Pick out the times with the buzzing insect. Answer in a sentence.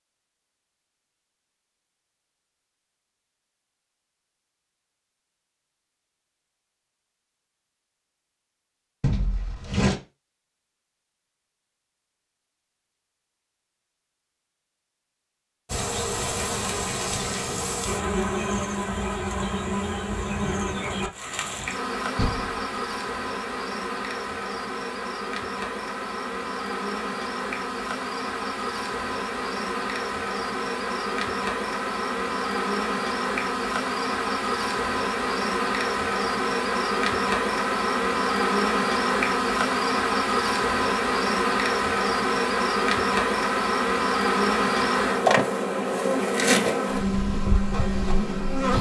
You can hear the buzzing insect from 15.7 to 48.7 s.